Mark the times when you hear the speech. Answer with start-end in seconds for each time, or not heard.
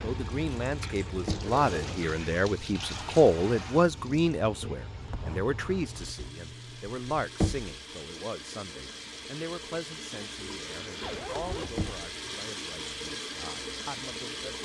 0.0-14.6.